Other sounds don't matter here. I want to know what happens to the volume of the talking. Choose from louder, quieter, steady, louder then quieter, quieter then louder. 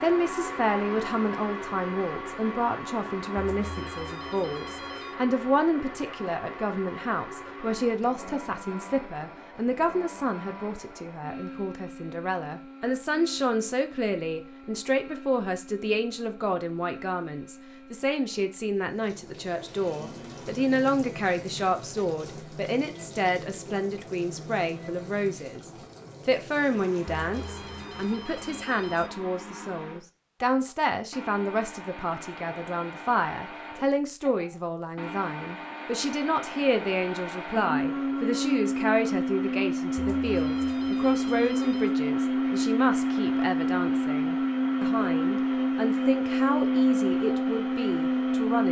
steady.